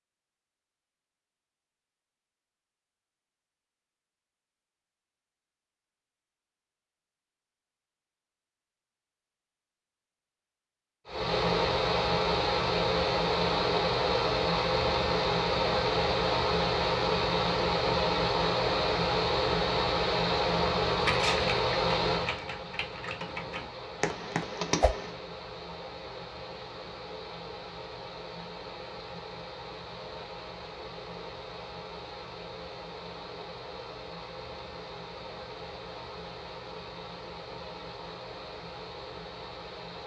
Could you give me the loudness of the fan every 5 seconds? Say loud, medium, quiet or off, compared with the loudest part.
off, off, loud, loud, loud, quiet, quiet, quiet.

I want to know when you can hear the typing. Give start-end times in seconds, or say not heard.
21.0-25.1.